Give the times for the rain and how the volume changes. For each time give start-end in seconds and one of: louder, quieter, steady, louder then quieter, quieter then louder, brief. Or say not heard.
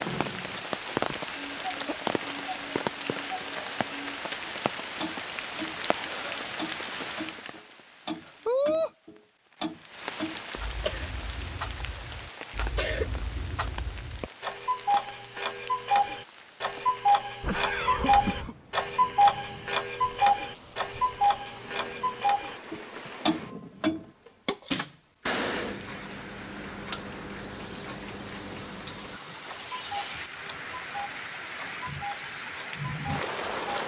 0.0-33.8 quieter then louder.